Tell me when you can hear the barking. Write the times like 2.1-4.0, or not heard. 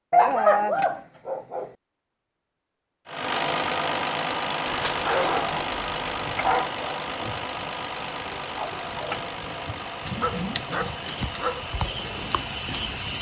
0.1-1.7, 4.7-6.7, 10.2-11.7.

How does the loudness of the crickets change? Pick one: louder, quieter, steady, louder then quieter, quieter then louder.
louder.